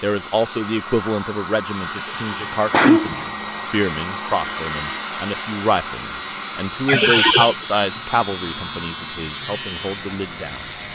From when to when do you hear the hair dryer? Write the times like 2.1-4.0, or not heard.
0.0-10.9.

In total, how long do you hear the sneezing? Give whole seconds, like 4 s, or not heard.
2 s.